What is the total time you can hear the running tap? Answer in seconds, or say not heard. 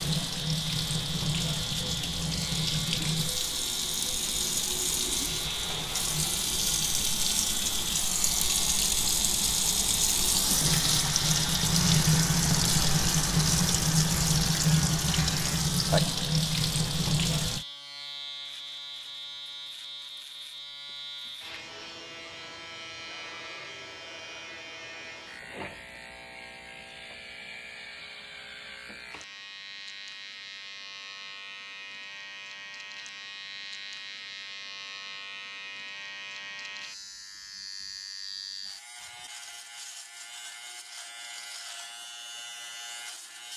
18 s.